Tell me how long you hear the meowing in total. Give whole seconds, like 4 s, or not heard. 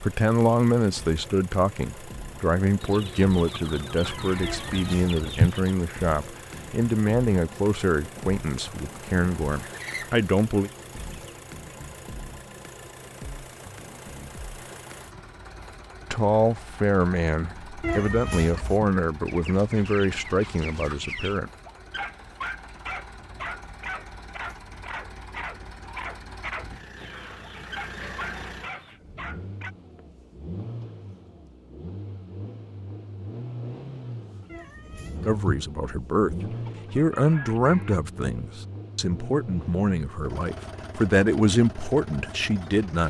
3 s.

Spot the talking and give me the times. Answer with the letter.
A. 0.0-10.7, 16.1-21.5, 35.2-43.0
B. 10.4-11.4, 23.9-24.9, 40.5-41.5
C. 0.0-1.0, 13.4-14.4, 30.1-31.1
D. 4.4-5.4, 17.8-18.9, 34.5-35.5
A.